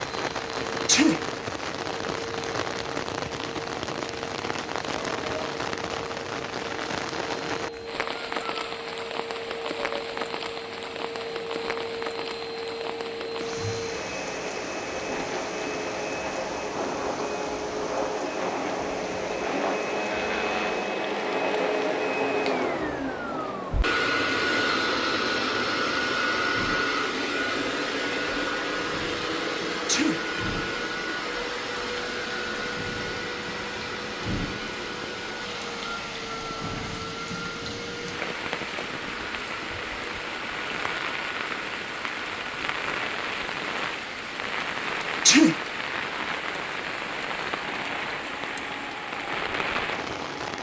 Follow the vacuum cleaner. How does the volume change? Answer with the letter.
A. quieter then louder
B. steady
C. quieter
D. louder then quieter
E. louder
D.